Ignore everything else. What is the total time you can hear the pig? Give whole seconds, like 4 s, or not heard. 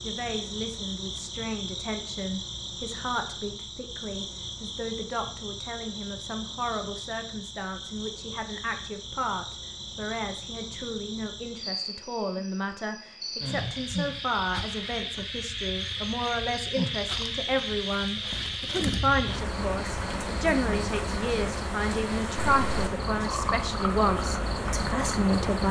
not heard.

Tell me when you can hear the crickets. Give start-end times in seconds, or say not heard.
0.0-25.6.